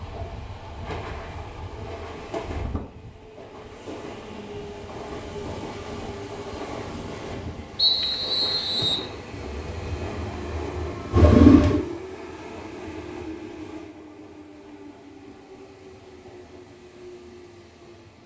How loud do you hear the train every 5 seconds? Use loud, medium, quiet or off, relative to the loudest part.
loud, loud, loud, medium.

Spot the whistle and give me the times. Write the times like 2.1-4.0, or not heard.
7.8-9.1.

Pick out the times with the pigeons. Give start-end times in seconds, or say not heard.
9.3-11.8.